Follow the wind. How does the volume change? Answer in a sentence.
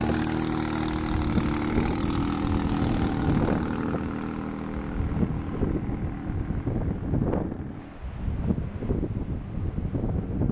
The loudness of the wind stays about the same.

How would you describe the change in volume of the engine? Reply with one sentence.
The loudness of the engine goes down.